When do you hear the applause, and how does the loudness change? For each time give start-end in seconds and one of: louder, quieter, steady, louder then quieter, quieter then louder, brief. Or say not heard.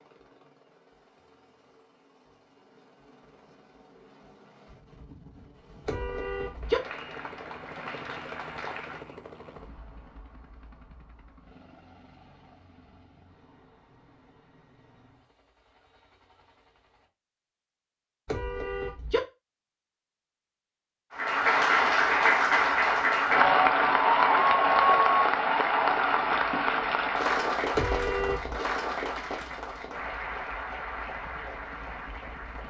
6.6-9.1 brief
21.1-32.6 quieter.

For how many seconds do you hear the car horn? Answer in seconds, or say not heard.
3 s.